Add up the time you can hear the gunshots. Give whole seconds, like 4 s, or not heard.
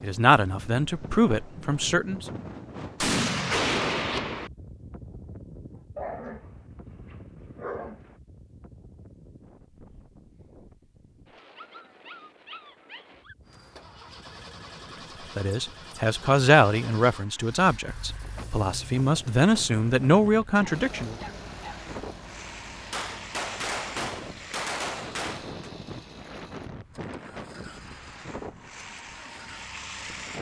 4 s.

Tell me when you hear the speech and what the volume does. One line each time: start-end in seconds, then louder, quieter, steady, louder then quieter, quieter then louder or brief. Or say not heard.
0.0-2.2 brief
15.3-21.1 quieter then louder.